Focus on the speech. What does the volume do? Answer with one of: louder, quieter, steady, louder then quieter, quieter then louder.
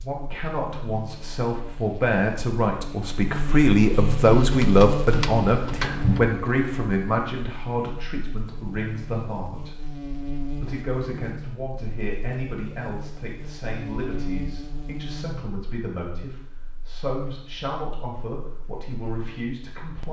quieter.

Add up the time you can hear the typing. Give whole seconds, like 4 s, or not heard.
2 s.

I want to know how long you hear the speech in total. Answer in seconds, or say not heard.
20 s.